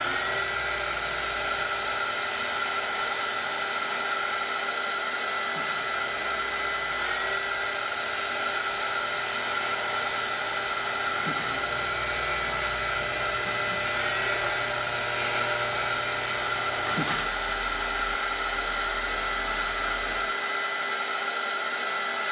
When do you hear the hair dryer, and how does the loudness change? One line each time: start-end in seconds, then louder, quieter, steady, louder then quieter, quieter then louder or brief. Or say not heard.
0.0-22.2 steady.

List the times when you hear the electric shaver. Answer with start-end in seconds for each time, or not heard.
0.0-20.4.